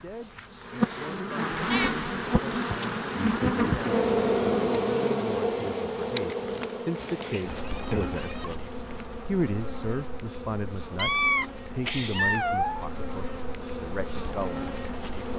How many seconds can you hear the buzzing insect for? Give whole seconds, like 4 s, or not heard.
15 s.